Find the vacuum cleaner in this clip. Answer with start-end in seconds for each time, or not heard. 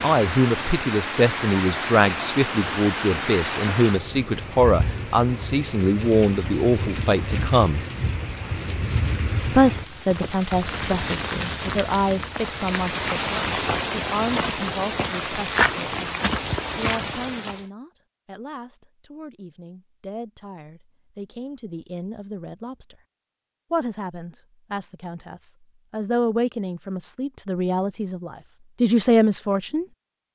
not heard.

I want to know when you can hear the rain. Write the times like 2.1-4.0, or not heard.
0.0-17.6.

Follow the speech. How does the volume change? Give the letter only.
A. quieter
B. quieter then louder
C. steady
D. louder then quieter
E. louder
B.